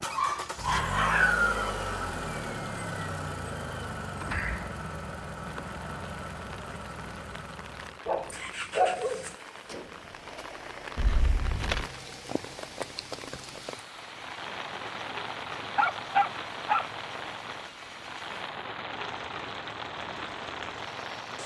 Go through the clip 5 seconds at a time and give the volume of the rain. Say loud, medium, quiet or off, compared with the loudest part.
off, medium, loud, loud, loud.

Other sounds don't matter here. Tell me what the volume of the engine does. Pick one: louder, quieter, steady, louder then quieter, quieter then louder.
quieter.